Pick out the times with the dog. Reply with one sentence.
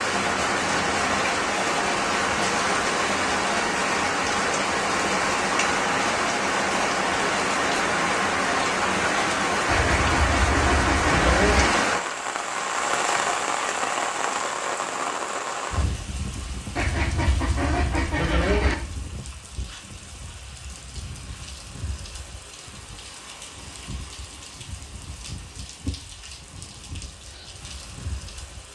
You can't hear the dog here.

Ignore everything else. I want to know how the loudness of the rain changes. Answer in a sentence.
The loudness of the rain goes down.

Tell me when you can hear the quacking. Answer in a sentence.
The quacking can be heard from 9.7 to 11.7 s and from 16.8 to 18.8 s.